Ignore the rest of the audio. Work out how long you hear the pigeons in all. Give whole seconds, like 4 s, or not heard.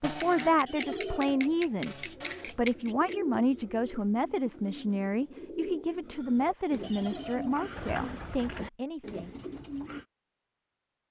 10 s.